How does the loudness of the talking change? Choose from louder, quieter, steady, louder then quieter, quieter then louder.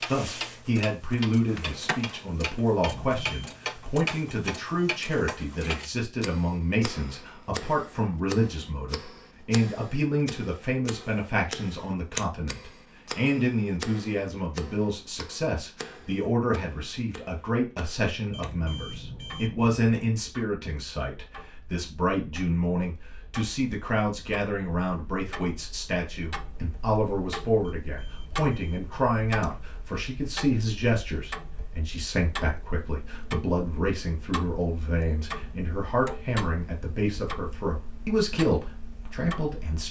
steady.